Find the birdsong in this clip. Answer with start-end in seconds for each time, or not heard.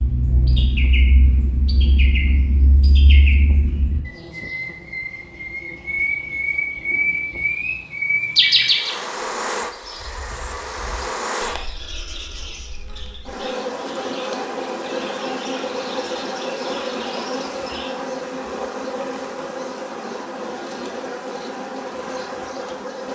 0.0-17.9.